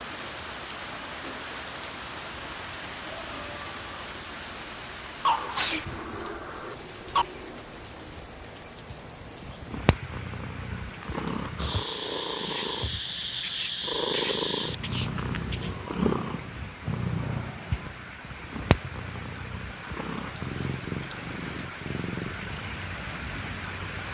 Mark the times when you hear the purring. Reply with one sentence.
You can hear the purring from 8.9 to 24.0 s.